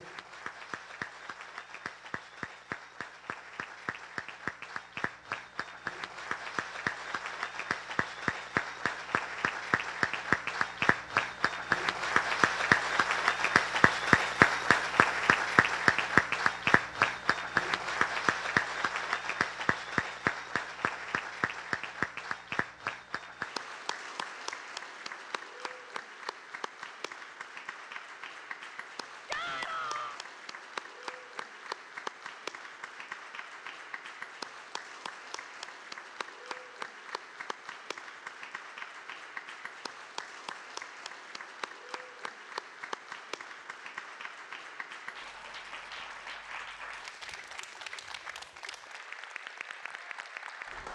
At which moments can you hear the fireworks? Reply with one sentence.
You can't hear the fireworks here.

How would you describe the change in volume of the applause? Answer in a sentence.
The loudness of the applause goes up, then down.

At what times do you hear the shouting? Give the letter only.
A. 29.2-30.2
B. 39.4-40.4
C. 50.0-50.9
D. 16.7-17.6
A.